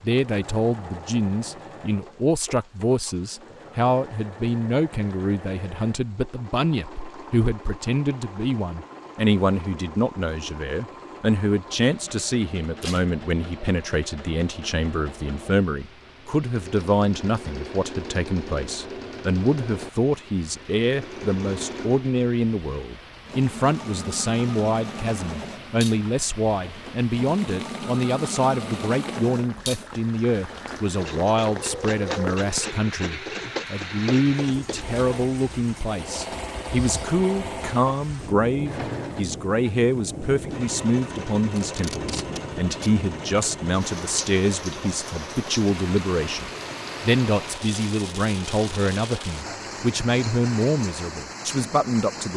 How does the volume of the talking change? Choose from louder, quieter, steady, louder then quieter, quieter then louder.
steady.